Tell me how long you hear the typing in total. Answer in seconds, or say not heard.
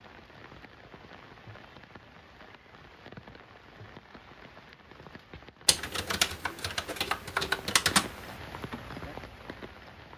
3 s.